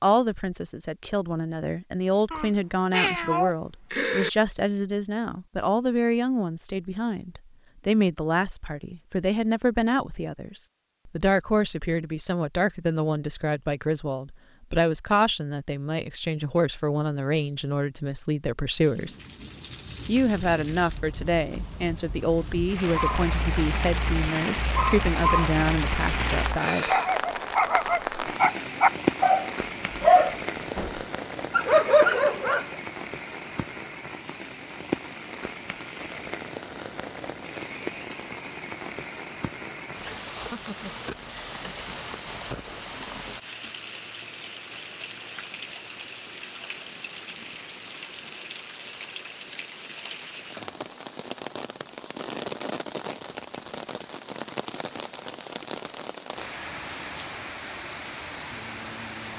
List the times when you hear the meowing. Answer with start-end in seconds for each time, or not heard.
2.3-4.3.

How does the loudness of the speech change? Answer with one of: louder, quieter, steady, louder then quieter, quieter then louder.
steady.